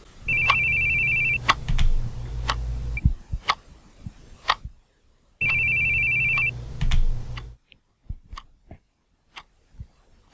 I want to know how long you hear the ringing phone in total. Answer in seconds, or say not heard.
5 s.